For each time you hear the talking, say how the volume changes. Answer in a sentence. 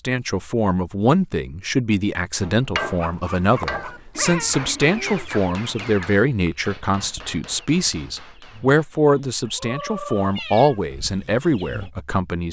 You can hear the talking from 0.0 to 12.4 s, at a steady volume.